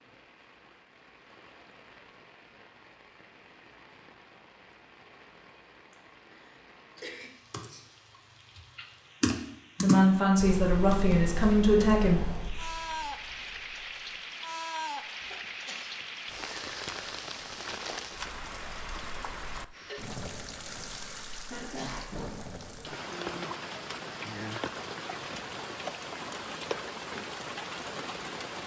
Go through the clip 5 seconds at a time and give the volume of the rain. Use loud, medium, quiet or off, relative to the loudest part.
quiet, quiet, loud, loud, loud, loud.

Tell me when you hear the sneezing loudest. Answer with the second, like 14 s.
22 s.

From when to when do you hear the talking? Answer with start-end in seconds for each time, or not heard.
9.8-12.2.